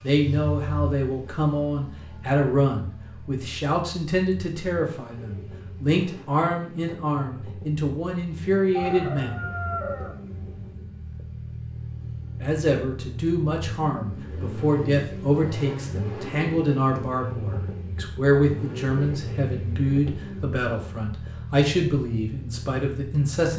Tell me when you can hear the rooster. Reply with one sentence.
You can hear the rooster from 8.8 to 10.7 s.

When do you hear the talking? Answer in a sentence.
You can hear the talking from 0.0 to 9.3 s and from 12.4 to 23.5 s.